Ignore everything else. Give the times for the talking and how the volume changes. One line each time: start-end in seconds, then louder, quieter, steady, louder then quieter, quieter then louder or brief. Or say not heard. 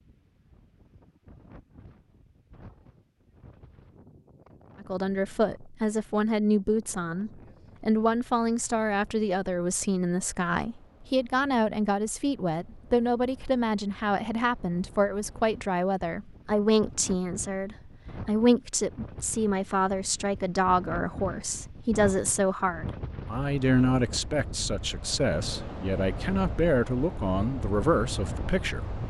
4.8-29.0 steady.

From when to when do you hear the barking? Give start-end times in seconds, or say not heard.
not heard.